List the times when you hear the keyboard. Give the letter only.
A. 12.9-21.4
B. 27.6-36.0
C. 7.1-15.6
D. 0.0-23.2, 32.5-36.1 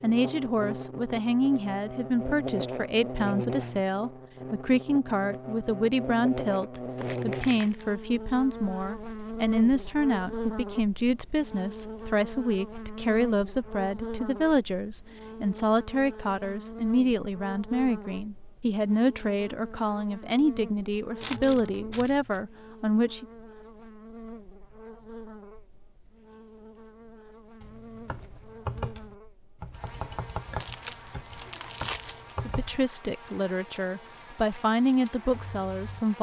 B.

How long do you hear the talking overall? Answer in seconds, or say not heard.
27 s.